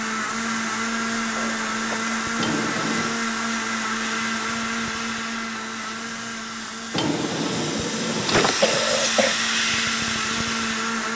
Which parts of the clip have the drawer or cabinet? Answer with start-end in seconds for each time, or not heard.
2.4-3.2, 6.9-8.8.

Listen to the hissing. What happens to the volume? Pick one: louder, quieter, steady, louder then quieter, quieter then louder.
louder.